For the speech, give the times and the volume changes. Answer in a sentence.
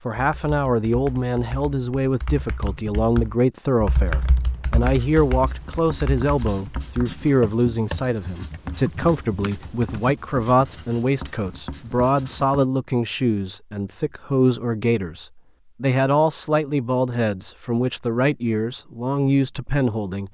You can hear the speech from 0.1 to 20.2 s, at a steady volume.